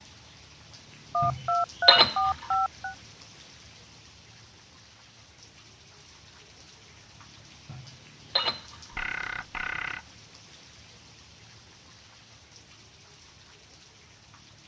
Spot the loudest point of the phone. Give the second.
2 s.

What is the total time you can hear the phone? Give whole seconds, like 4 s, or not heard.
3 s.